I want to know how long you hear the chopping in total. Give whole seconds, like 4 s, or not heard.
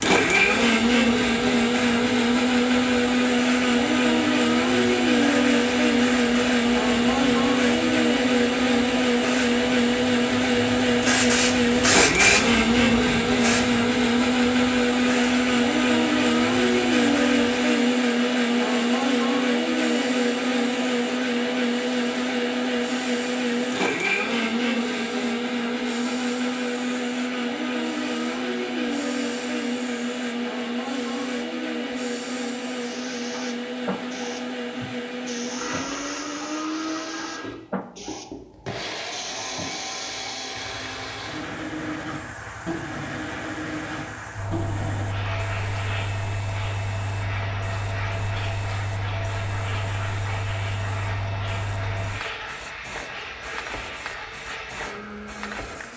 not heard.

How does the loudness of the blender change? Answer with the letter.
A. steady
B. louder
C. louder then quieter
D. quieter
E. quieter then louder
D.